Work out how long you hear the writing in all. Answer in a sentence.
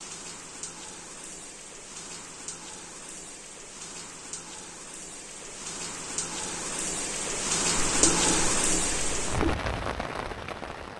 You can hear the writing for 2 seconds altogether.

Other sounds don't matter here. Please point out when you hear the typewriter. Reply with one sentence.
The typewriter can't be heard in this clip.